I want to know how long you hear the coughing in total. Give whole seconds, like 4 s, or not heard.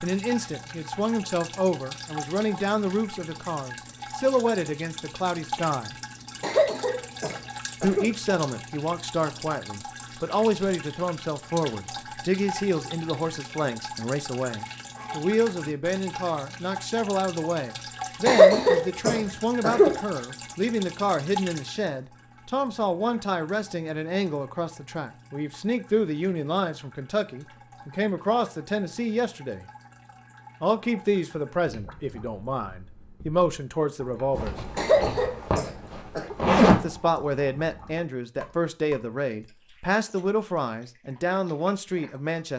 5 s.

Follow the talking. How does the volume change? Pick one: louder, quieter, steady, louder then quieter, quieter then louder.
steady.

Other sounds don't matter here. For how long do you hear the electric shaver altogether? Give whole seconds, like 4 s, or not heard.
not heard.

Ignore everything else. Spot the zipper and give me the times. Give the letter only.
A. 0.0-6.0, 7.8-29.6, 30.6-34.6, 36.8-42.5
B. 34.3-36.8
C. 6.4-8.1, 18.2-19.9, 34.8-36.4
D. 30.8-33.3
B.